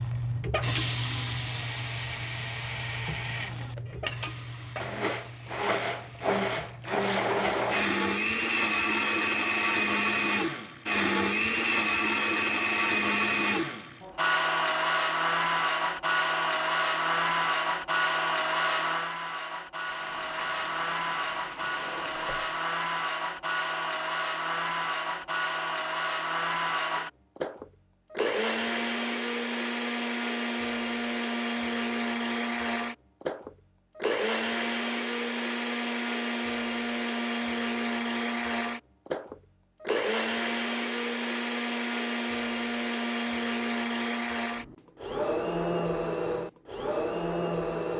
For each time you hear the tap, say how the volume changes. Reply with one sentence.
The tap can be heard from 0.0 to 8.0 s, getting quieter; and briefly from 19.9 to 22.6 s.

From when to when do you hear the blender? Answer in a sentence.
The blender can be heard from 0.0 to 47.9 s.